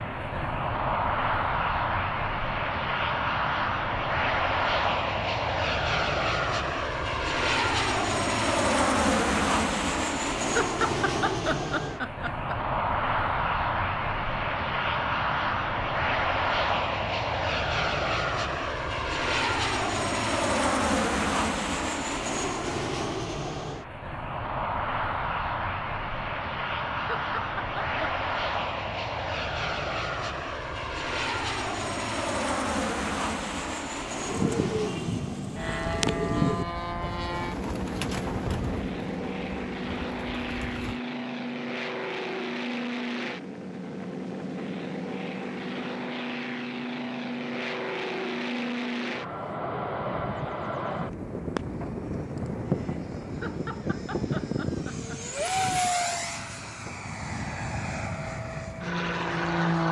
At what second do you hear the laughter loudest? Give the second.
11 s.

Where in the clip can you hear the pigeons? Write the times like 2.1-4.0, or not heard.
34.2-41.0.